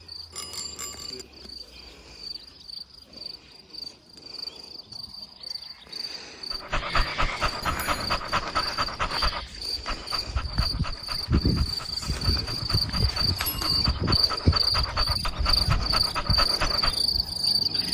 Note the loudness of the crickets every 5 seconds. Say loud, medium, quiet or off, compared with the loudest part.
quiet, medium, loud, loud.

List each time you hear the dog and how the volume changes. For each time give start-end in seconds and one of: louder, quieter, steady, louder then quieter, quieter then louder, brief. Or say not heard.
6.5-17.0 quieter then louder.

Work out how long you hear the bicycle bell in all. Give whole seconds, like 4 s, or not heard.
2 s.